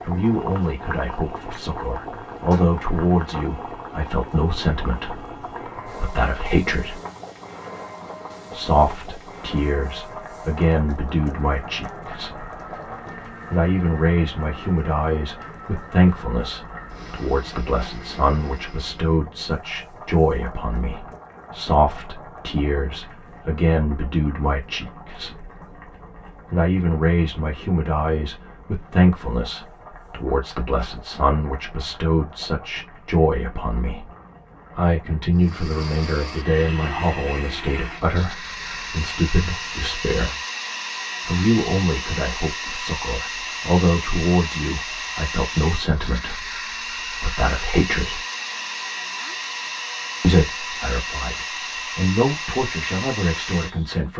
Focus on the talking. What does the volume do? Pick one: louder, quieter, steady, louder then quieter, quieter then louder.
steady.